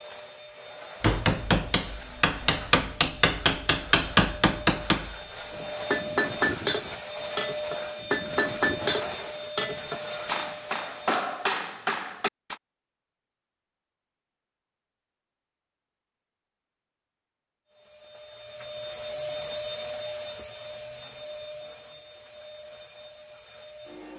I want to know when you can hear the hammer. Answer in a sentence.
The hammer can be heard from 1.0 to 12.6 s.